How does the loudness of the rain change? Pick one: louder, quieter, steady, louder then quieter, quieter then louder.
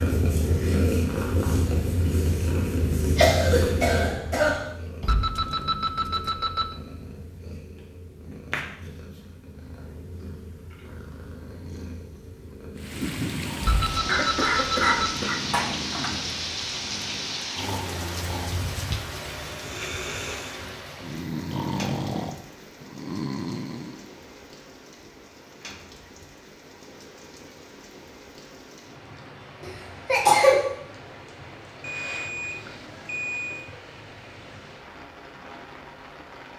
quieter.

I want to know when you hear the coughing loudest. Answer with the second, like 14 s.
30 s.